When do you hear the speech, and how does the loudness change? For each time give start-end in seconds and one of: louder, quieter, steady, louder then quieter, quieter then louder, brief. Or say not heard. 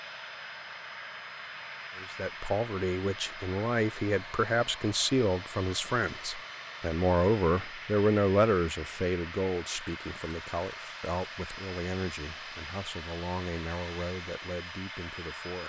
1.9-15.6 quieter.